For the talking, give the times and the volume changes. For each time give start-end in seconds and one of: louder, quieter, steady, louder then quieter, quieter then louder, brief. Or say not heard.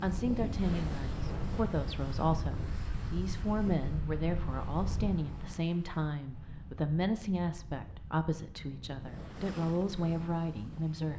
0.0-11.1 steady.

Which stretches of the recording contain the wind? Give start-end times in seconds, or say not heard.
0.0-10.9.